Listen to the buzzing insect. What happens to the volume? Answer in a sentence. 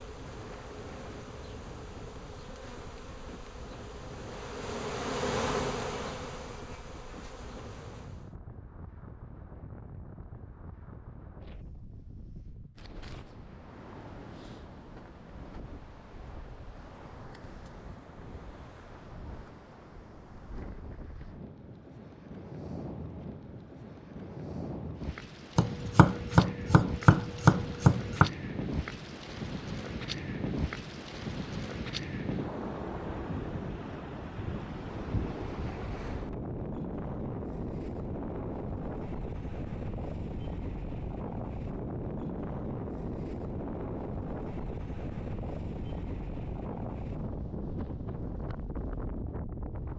The volume of the buzzing insect goes up, then down.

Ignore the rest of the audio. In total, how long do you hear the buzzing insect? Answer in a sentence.
You can hear the buzzing insect for 8 seconds altogether.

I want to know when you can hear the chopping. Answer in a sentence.
The chopping can be heard from 25.6 to 28.3 s.